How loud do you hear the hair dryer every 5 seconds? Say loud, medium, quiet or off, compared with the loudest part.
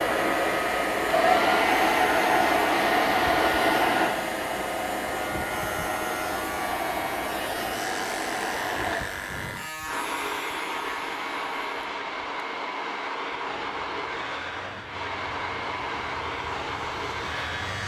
loud, medium, medium, medium.